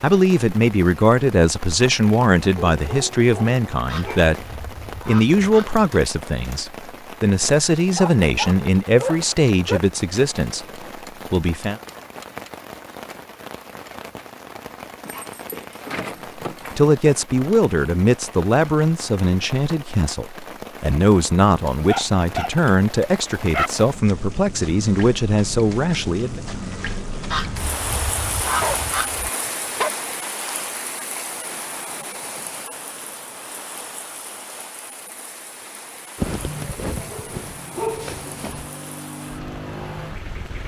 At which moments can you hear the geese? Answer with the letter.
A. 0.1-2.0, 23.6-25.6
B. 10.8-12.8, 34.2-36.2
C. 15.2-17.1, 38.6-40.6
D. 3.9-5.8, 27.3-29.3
D.